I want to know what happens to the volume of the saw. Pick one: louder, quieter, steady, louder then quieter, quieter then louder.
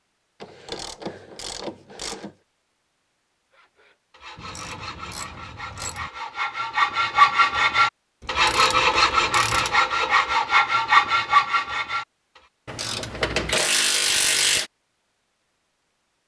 louder.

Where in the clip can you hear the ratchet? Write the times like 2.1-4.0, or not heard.
0.4-2.4, 4.3-6.1, 8.2-9.8, 12.7-14.7.